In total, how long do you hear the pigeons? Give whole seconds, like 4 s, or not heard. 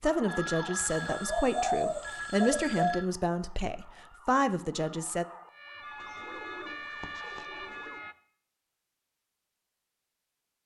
4 s.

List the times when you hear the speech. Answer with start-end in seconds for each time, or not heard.
0.0-5.2.